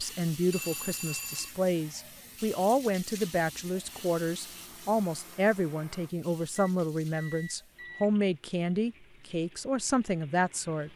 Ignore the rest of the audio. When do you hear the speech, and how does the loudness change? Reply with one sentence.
You can hear the speech from 0.0 to 10.9 s, at a steady volume.